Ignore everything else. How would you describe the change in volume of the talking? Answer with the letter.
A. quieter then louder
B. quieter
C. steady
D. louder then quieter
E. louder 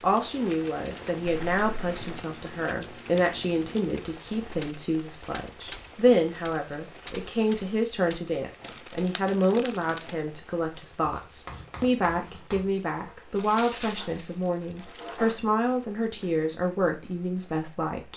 C.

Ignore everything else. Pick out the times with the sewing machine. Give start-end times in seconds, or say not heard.
not heard.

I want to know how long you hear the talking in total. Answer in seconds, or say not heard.
18 s.